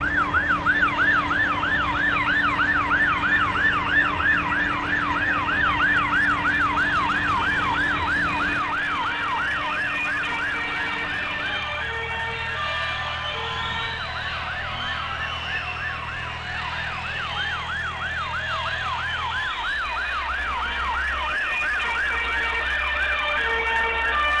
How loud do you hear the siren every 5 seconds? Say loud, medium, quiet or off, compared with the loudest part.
loud, loud, medium, medium, loud.